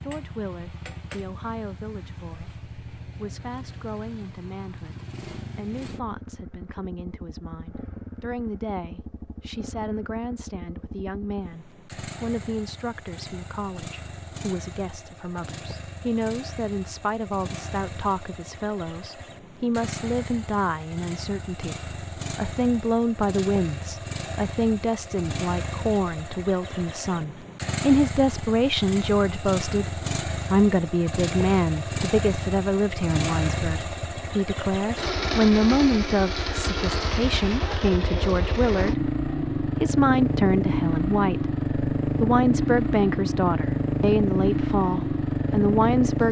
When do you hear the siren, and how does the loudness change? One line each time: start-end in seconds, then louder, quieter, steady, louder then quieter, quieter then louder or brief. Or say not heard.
not heard.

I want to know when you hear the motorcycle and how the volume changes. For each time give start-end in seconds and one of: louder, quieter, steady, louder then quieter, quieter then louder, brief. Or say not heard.
0.0-46.2 louder.